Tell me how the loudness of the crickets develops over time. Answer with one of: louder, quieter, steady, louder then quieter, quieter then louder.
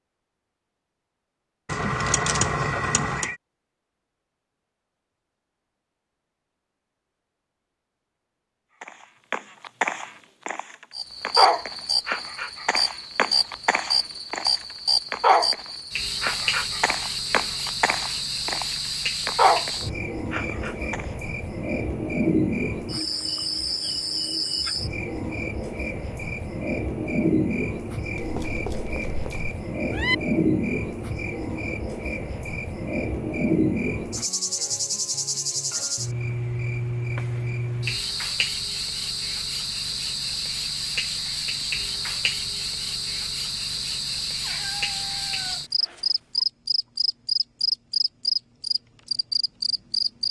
steady.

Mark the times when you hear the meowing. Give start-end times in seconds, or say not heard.
1.6-3.4, 28.1-30.1, 44.4-46.5.